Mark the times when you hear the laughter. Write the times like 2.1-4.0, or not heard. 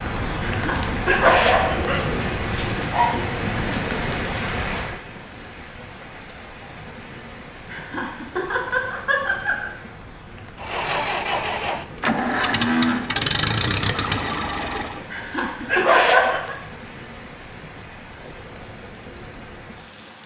0.5-1.4, 7.7-9.7, 15.1-16.6.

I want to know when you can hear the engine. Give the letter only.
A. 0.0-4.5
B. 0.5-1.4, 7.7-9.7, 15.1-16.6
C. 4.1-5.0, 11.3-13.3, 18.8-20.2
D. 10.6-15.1
D.